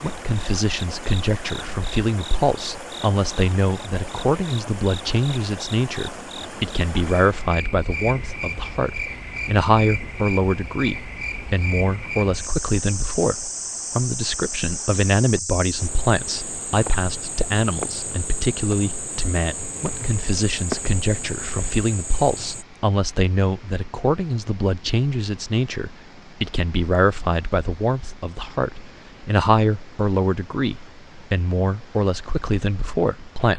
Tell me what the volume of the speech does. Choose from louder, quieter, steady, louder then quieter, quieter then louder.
steady.